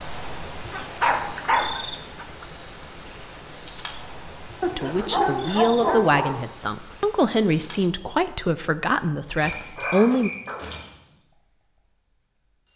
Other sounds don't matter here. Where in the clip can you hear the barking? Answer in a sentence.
The barking can be heard from 0.7 to 2.2 s, from 4.6 to 6.4 s and from 9.4 to 10.9 s.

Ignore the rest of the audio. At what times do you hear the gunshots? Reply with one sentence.
You can't hear the gunshots here.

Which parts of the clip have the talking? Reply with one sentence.
The talking can be heard from 4.7 to 10.3 s.